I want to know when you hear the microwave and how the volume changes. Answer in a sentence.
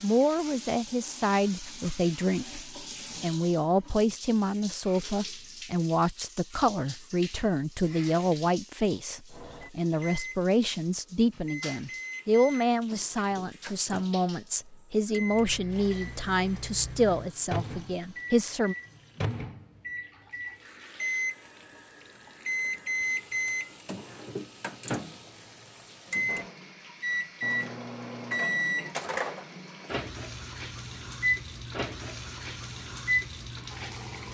The microwave can be heard from 9.3 to 34.2 s, getting louder.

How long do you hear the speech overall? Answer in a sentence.
You can hear the speech for 19 seconds altogether.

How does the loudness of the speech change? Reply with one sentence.
The loudness of the speech stays about the same.